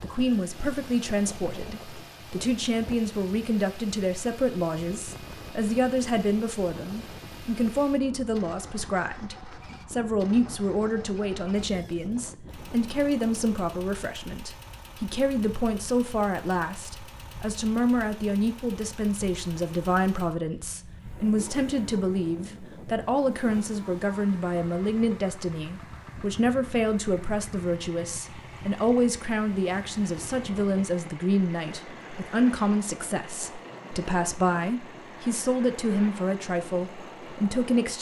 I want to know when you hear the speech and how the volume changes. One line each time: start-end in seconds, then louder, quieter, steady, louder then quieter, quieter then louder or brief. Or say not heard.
0.0-37.9 steady.